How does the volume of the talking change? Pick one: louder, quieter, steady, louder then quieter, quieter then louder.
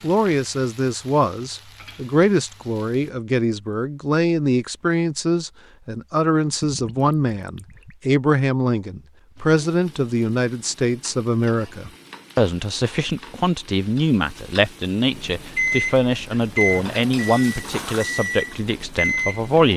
steady.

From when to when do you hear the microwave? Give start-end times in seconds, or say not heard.
15.1-19.6.